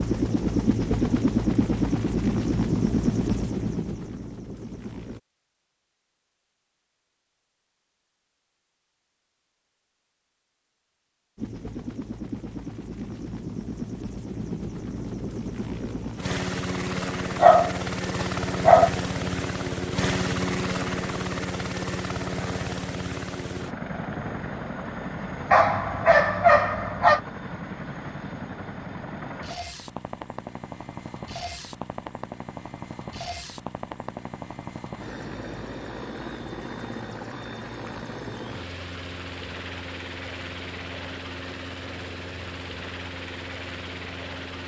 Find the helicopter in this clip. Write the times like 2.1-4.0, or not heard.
0.0-5.2, 11.3-44.6.